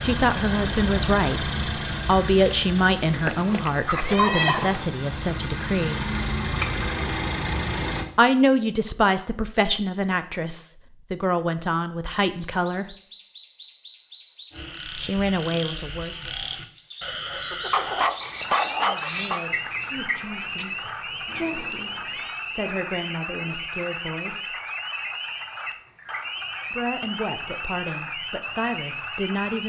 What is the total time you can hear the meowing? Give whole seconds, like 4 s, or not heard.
3 s.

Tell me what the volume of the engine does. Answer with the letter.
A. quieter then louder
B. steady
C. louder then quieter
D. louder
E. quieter
A.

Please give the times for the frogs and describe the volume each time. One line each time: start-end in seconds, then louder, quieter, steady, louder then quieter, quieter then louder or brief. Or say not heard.
14.5-29.6 steady.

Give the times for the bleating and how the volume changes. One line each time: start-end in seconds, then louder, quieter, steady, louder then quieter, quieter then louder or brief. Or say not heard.
not heard.